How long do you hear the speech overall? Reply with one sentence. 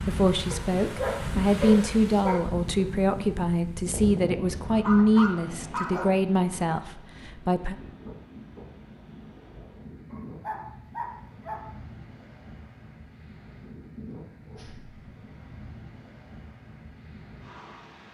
You can hear the speech for 8 seconds altogether.